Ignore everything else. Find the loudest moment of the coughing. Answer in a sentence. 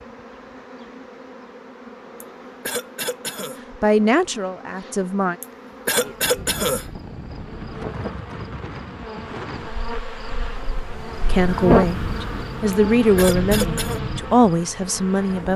The volume of the coughing peaks at 6 seconds.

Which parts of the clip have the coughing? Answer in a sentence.
The coughing can be heard from 2.2 to 3.5 s, from 5.4 to 6.8 s and from 12.7 to 14.0 s.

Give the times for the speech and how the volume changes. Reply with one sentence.
The speech can be heard briefly from 3.7 to 5.3 s; and from 11.2 to 15.5 s, at a steady volume.